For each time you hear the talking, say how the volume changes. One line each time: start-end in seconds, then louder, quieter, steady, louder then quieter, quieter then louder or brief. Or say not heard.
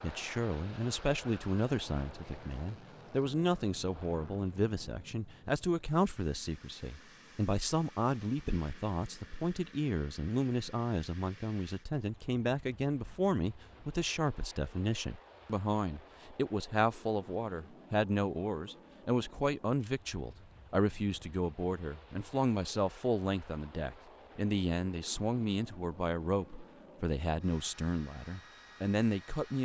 0.0-29.6 steady.